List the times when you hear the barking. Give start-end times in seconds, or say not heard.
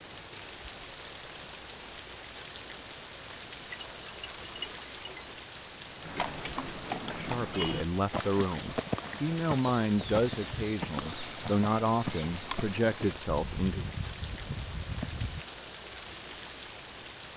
3.7-5.4.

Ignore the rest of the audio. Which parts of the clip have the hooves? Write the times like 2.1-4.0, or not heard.
6.0-15.4.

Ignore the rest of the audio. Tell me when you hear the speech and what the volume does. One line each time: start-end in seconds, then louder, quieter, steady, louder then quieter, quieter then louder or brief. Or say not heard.
7.0-13.8 steady.